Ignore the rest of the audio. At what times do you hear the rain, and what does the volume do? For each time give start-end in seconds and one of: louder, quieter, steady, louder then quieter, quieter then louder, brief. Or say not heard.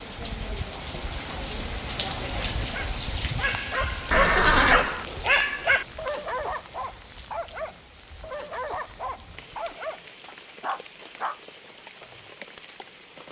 0.0-13.2 quieter.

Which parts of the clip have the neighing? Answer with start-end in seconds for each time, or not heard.
4.1-4.9.